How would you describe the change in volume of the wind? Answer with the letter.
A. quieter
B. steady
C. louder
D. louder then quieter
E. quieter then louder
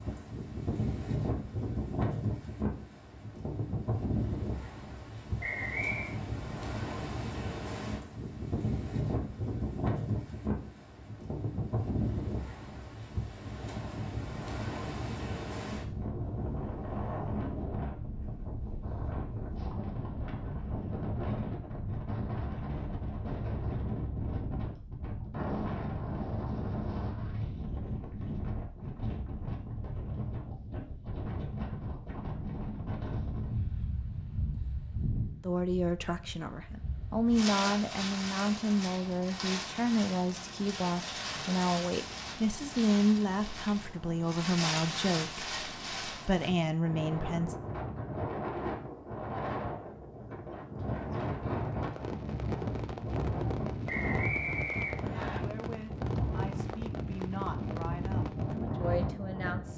B.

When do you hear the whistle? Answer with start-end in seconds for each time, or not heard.
5.4-6.2, 53.9-55.4.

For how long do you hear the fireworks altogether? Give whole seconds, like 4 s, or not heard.
7 s.